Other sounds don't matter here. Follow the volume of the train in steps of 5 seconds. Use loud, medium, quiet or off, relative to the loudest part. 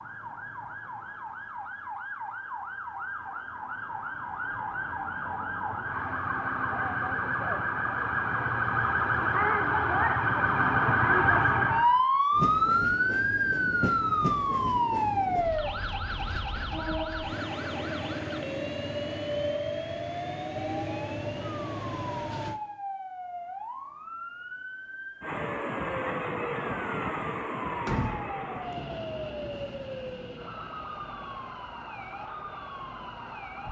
off, off, loud, loud, loud, loud, quiet.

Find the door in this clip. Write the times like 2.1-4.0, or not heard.
27.9-28.4.